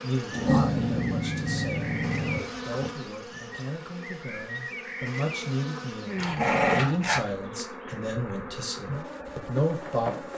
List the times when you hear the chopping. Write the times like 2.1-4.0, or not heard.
not heard.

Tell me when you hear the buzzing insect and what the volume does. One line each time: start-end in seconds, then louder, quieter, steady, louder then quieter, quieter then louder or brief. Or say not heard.
0.0-10.3 steady.